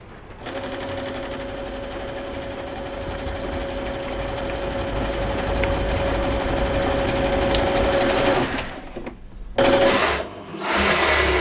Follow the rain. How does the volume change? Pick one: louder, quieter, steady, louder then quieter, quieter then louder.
louder.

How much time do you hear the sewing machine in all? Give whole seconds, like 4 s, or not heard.
11 s.